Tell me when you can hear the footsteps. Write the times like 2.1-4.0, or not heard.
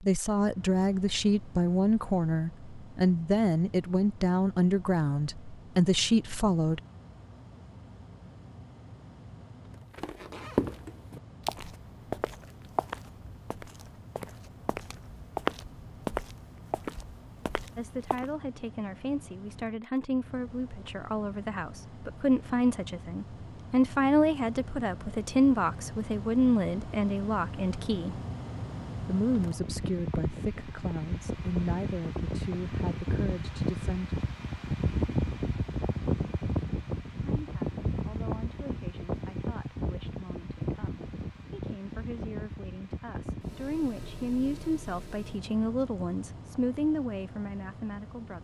9.9-18.3.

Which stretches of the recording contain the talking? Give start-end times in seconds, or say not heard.
0.0-6.8, 17.8-28.2, 29.1-34.1, 37.2-48.3.